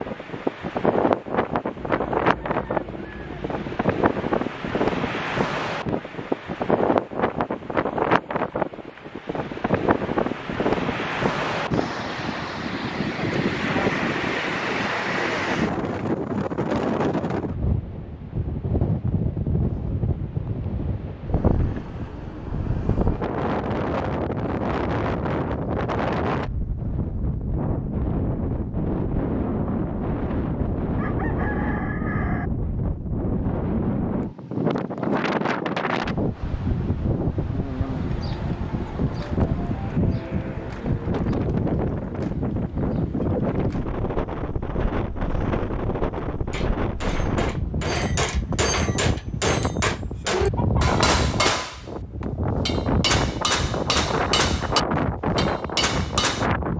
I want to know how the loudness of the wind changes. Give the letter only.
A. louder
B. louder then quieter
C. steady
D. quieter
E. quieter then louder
C.